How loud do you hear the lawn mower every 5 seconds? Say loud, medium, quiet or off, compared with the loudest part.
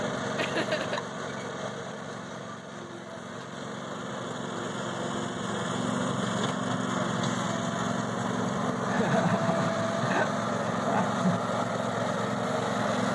medium, loud, loud.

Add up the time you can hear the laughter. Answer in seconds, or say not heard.
3 s.